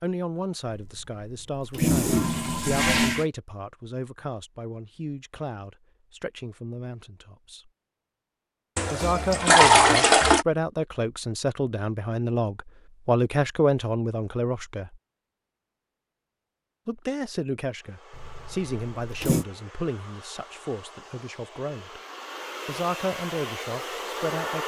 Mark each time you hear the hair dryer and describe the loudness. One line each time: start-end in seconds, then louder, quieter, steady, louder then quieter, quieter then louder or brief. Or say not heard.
17.8-24.6 louder.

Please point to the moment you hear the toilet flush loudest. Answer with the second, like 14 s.
10 s.